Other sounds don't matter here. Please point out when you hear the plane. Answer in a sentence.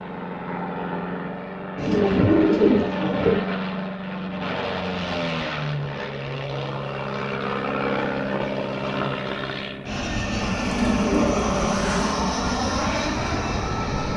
The plane can be heard from 0.0 to 14.1 s.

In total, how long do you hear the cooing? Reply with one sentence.
You can hear the cooing for 3 seconds altogether.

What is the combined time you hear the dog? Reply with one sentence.
You can't hear the dog here.